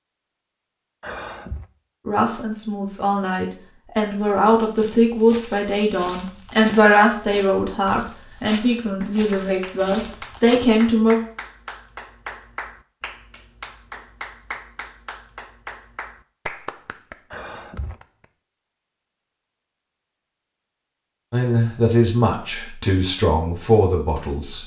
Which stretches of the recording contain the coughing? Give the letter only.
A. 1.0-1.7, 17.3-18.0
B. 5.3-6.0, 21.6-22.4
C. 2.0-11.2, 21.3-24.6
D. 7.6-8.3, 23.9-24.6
A.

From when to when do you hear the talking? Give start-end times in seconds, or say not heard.
2.0-11.2, 21.3-24.6.